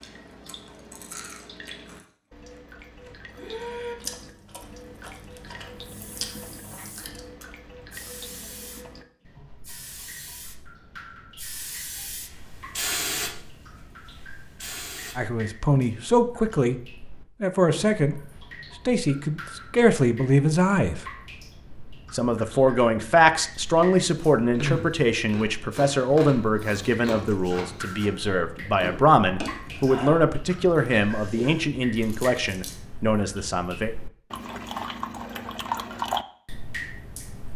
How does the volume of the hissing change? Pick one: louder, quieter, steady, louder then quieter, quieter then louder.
louder then quieter.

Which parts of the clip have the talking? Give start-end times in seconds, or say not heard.
15.2-18.2, 18.9-21.0, 22.1-33.9.